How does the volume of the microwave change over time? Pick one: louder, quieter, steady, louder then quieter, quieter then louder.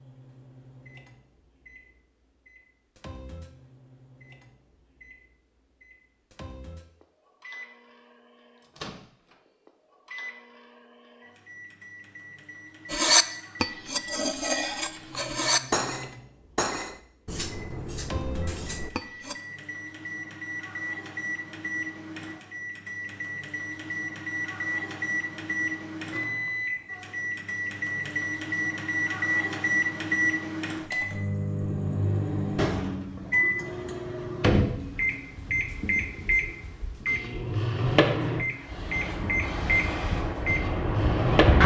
louder.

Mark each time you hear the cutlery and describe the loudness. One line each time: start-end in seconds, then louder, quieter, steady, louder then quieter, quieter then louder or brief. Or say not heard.
12.9-19.4 quieter.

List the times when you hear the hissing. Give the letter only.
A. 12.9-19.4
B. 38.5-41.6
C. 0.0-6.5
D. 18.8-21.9
B.